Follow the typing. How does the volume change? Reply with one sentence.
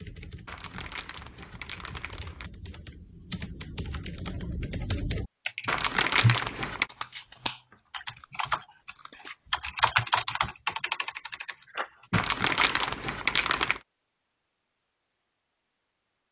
The loudness of the typing goes up, then down.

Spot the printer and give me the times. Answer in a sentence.
The printer can't be heard in this clip.